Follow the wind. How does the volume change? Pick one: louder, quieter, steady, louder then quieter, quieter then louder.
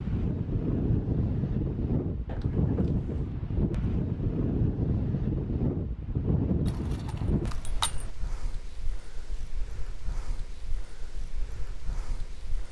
quieter.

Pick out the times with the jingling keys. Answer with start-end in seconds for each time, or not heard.
6.7-8.1.